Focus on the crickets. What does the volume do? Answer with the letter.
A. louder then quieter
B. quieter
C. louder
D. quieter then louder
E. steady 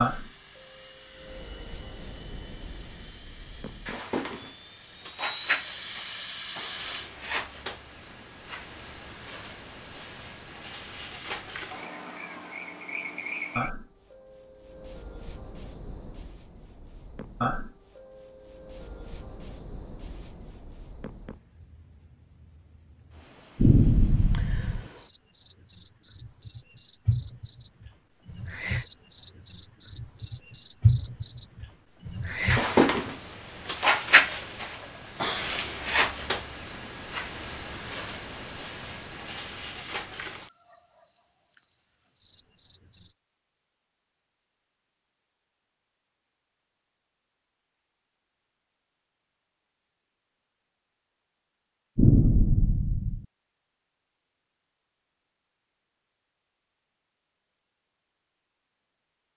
A.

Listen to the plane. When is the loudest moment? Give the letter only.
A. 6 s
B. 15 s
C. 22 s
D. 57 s
A.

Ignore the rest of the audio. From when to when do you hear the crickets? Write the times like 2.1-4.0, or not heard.
0.0-43.1.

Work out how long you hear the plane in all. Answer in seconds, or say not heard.
7 s.